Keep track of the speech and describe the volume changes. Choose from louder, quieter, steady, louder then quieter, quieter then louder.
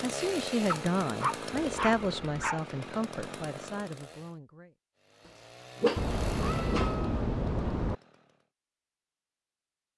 quieter.